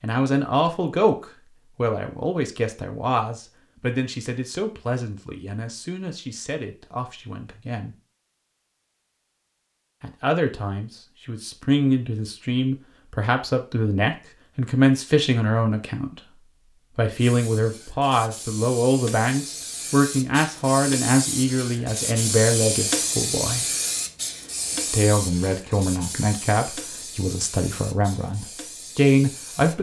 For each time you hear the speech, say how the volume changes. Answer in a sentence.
The speech can be heard from 0.0 to 8.0 s, getting quieter; from 10.0 to 23.6 s, at a steady volume; and from 24.9 to 29.7 s, getting louder.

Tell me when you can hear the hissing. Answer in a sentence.
The hissing can be heard from 17.1 to 29.7 s.